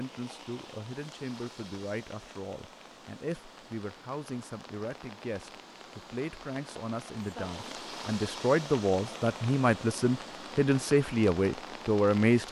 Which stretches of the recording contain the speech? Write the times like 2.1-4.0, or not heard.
0.0-12.4.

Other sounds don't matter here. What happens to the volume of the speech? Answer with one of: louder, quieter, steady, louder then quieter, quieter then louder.
louder.